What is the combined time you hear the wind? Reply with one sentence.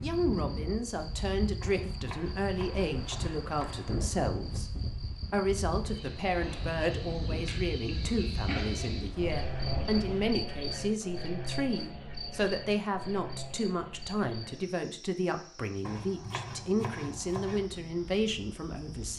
The wind can be heard for 10 seconds in total.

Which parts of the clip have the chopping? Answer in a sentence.
You can hear the chopping from 1.6 to 4.0 s and from 15.8 to 17.7 s.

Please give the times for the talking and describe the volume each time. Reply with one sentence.
The talking can be heard from 0.0 to 19.1 s, at a steady volume.